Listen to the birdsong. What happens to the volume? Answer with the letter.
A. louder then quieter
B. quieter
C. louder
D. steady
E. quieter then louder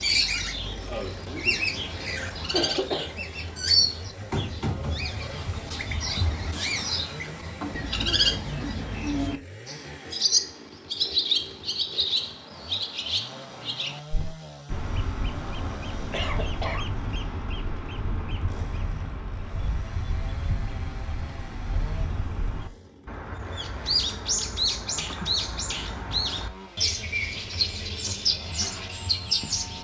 E.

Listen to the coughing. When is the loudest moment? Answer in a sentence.
The volume of the coughing peaks at 3 seconds.